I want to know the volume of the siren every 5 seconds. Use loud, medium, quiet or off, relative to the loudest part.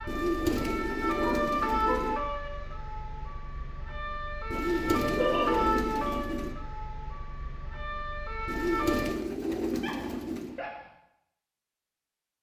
loud, loud, off.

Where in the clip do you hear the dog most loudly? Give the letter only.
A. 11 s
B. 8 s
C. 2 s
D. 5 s
D.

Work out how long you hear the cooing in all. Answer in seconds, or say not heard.
6 s.